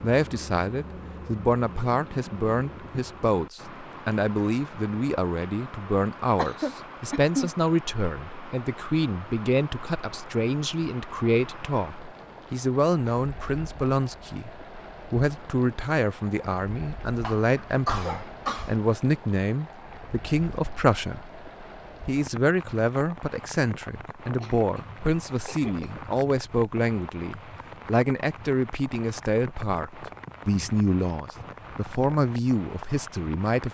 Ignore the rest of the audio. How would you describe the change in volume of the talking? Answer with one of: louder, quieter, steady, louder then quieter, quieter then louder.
steady.